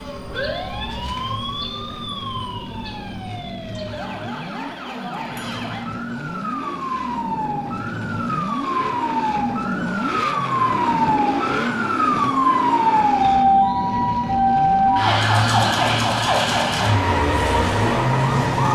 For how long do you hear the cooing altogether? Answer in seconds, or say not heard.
not heard.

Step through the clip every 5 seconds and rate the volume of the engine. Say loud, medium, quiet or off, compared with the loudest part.
medium, loud, loud, medium.